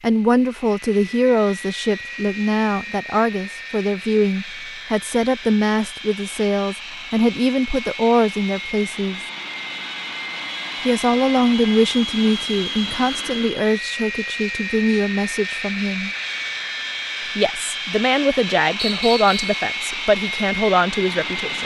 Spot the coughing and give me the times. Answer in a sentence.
You can't hear the coughing here.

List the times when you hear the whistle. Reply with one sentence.
You can hear the whistle from 18.8 to 19.6 s.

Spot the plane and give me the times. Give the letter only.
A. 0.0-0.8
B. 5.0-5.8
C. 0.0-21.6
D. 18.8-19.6
C.